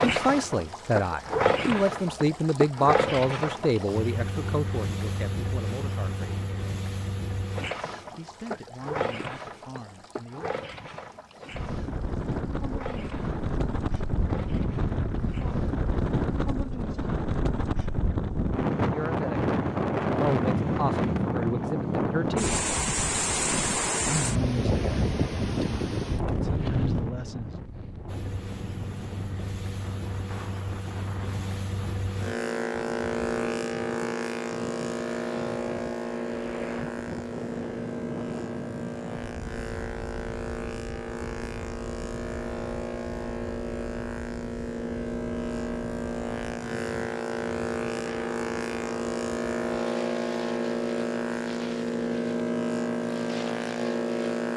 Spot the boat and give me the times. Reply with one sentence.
The boat can be heard from 0.0 to 16.4 s and from 28.1 to 54.5 s.